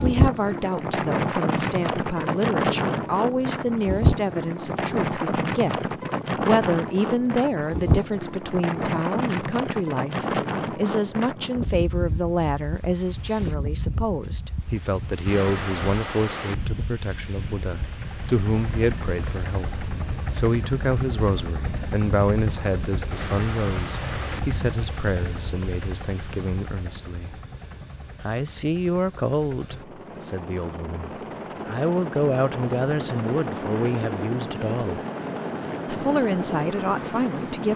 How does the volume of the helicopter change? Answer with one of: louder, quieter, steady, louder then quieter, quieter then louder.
quieter then louder.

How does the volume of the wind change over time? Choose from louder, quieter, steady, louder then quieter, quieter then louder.
quieter.